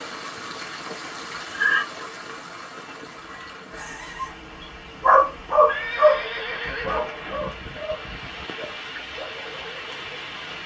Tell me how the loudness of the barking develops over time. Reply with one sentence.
The loudness of the barking goes down.